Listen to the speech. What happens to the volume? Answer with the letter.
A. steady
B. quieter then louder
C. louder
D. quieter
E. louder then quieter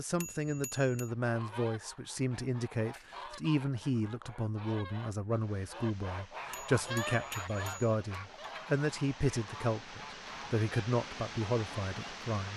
A.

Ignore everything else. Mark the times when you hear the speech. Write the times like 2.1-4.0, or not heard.
0.0-12.5.